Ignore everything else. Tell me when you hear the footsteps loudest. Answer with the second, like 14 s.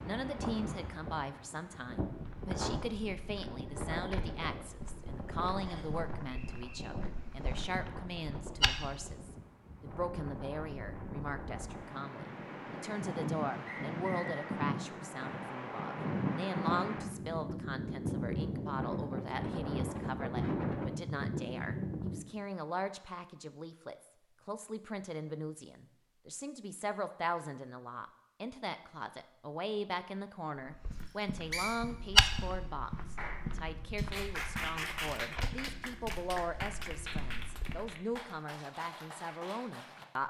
32 s.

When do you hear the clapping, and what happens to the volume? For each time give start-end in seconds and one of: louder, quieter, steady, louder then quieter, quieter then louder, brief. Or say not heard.
33.1-40.2 quieter.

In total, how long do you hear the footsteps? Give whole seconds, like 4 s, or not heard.
15 s.